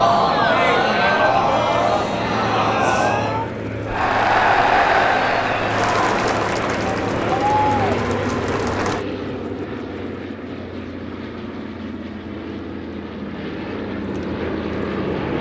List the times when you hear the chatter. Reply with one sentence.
You can hear the chatter from 0.0 to 9.1 s.